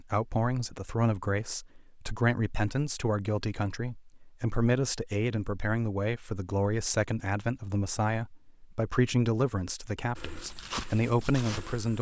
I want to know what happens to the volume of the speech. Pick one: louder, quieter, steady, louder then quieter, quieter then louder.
steady.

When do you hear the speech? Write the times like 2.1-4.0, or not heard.
0.0-11.9.